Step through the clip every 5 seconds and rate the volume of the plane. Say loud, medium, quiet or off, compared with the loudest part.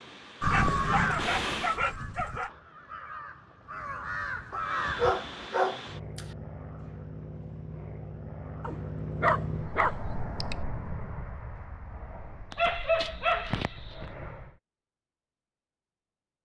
loud, loud, medium, off.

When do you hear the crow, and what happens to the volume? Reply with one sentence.
You can hear the crow from 0.4 to 5.5 s, getting quieter then louder.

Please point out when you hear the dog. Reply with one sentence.
You can hear the dog from 0.4 to 2.5 s, from 4.5 to 6.2 s, from 8.6 to 10.6 s and from 12.5 to 14.1 s.